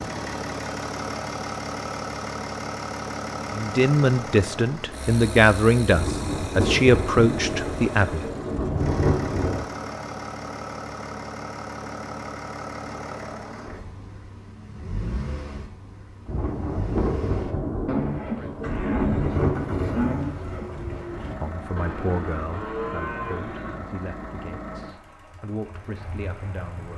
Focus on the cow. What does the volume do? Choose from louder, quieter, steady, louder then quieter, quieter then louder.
quieter then louder.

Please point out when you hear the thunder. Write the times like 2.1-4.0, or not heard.
5.9-9.7, 16.2-21.0.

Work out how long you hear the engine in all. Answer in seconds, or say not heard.
27 s.